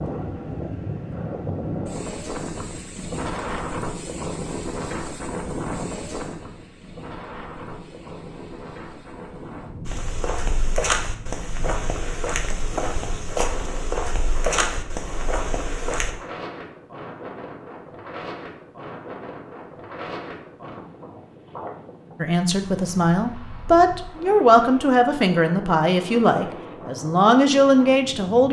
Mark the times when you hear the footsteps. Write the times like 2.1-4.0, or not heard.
9.8-16.1.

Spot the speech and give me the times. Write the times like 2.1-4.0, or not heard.
22.2-28.4.